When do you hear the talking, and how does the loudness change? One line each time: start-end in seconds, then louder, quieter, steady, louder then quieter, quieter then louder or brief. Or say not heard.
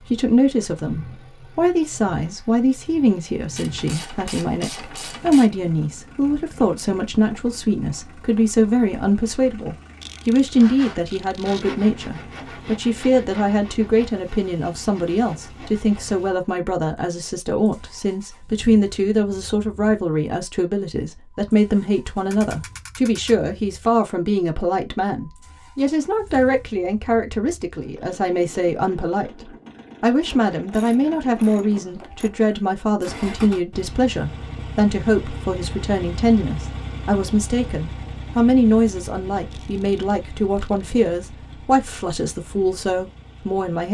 0.1-43.8 steady.